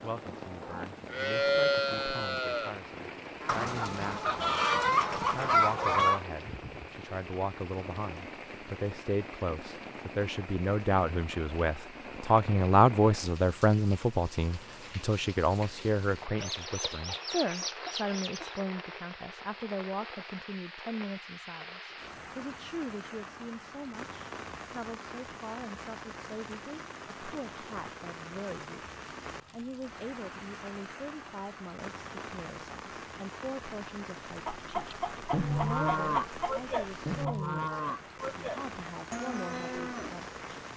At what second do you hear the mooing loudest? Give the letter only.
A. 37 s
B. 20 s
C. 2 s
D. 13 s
C.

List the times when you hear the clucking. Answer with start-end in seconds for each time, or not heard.
3.5-6.2, 16.4-18.6, 34.5-37.4.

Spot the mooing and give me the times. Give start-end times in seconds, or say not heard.
0.0-3.7, 34.9-40.6.